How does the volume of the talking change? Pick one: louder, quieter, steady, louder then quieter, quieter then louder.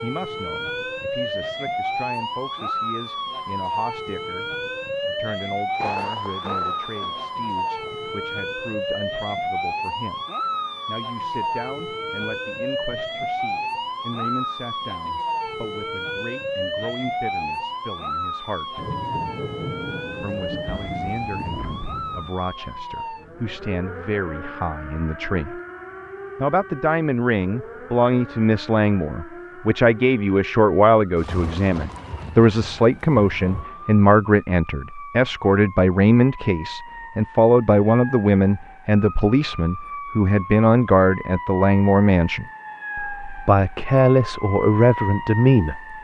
louder.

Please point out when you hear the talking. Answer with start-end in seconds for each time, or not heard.
0.0-10.2, 10.8-18.9, 20.1-25.6, 26.4-46.0.